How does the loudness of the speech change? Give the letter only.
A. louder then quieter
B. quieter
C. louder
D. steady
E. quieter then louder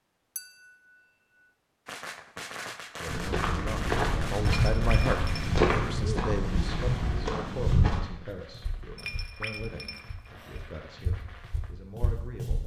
B.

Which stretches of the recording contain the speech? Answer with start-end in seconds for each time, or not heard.
2.9-12.6.